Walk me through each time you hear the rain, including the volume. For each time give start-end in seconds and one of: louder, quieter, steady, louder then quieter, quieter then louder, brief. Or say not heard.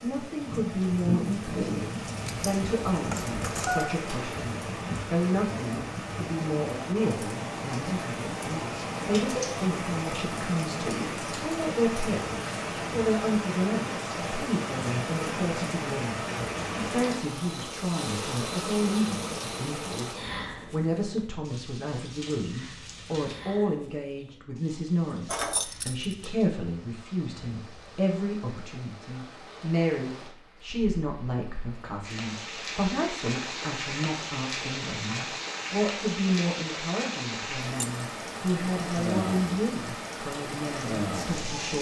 0.0-41.7 quieter then louder.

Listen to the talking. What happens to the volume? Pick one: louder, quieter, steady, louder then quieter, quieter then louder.
steady.